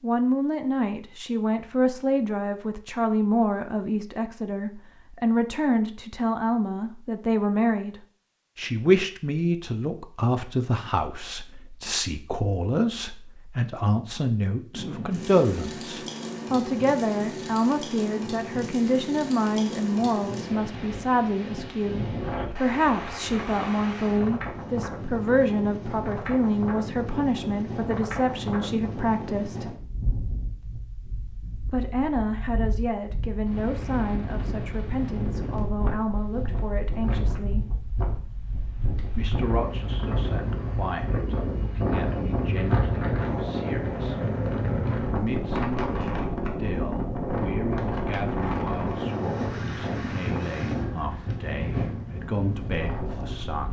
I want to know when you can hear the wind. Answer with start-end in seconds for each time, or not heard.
14.7-53.6.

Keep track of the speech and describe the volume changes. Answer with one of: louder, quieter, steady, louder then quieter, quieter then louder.
quieter.